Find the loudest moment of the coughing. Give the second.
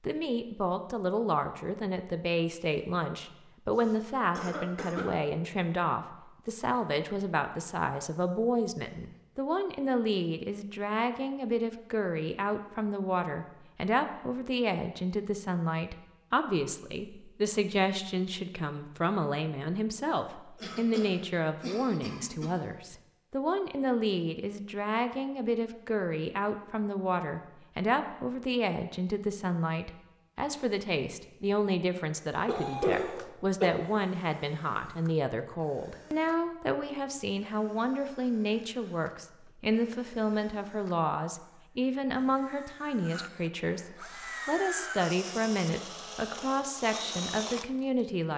33 s.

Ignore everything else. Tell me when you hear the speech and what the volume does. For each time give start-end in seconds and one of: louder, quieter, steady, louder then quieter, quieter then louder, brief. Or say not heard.
0.0-48.3 steady.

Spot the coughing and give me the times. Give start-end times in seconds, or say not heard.
3.7-5.1, 20.6-22.6, 32.5-33.7.